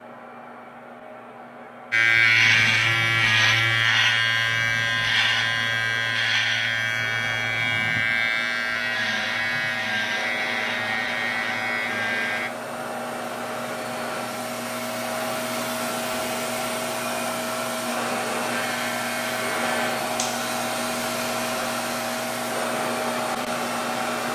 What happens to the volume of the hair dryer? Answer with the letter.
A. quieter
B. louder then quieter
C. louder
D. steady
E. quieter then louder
C.